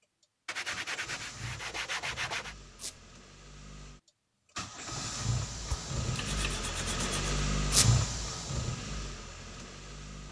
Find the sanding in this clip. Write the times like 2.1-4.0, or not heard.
0.5-2.5, 5.7-7.2.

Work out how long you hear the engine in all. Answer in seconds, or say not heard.
10 s.